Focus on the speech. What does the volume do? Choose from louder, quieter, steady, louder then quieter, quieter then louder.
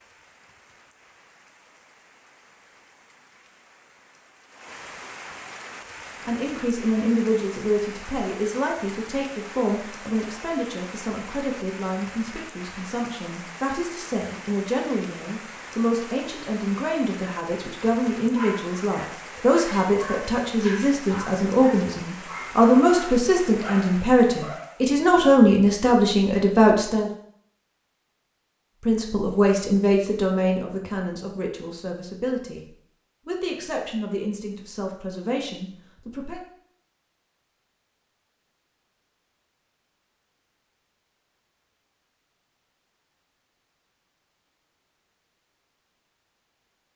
louder then quieter.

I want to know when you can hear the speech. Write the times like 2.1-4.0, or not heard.
6.2-27.1, 28.8-36.4.